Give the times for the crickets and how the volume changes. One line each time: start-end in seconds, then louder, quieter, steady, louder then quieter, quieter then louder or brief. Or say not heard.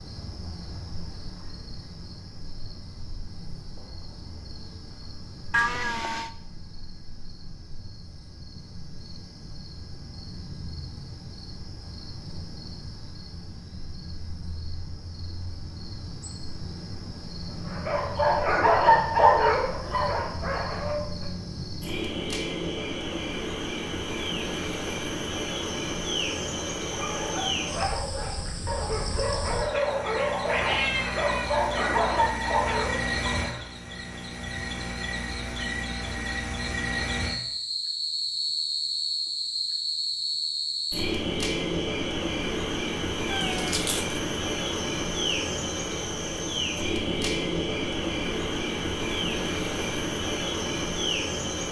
0.0-51.6 louder.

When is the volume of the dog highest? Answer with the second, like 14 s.
19 s.